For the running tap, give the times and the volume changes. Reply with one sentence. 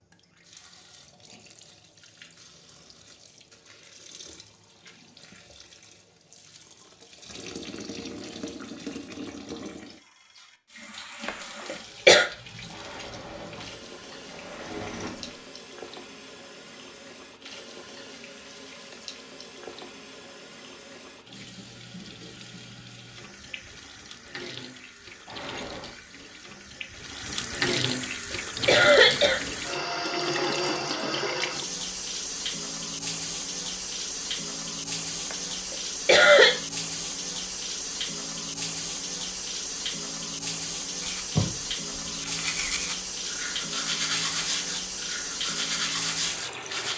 The running tap can be heard from 0.0 to 46.9 s, getting louder.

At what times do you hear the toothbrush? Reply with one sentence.
You can hear the toothbrush from 41.0 to 46.9 s.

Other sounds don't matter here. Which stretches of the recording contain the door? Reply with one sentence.
The door can be heard from 12.7 to 15.4 s and from 25.2 to 25.9 s.